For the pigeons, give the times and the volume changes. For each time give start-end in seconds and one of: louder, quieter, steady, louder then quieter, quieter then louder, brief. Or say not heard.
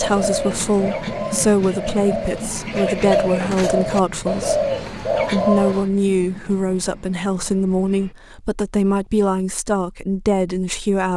0.0-5.9 louder.